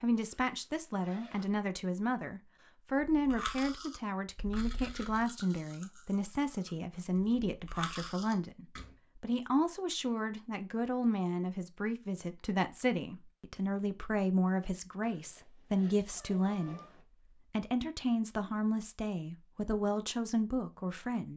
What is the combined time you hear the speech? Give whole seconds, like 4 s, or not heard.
21 s.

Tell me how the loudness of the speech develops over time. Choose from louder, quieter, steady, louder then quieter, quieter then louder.
steady.